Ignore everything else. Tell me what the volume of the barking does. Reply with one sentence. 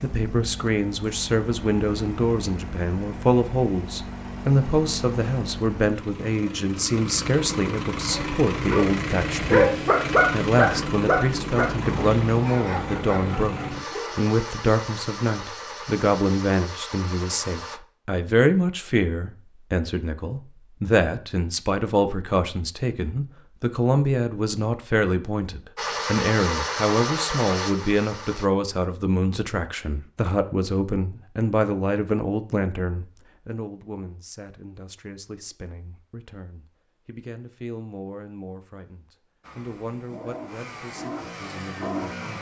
The volume of the barking goes up, then down.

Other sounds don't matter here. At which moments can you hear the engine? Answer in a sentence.
The engine can be heard from 0.0 to 17.8 s, from 25.8 to 28.5 s and from 39.4 to 42.3 s.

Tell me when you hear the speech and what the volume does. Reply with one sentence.
The speech can be heard from 0.0 to 42.3 s, getting quieter.